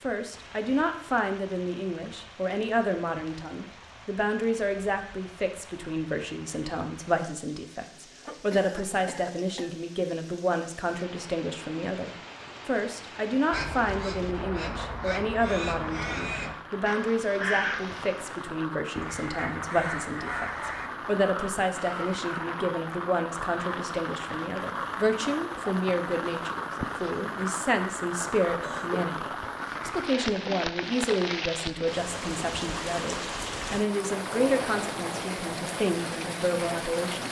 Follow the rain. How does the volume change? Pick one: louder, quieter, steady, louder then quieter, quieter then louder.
louder.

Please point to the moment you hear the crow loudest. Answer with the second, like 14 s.
18 s.